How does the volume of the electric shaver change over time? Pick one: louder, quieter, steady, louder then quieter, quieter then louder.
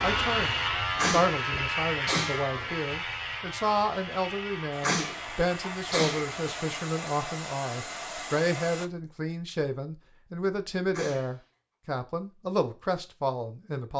quieter.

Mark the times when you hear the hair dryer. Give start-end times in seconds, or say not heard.
4.7-8.9.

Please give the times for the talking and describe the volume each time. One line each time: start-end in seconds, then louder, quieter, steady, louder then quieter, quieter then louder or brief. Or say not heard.
0.0-13.9 steady.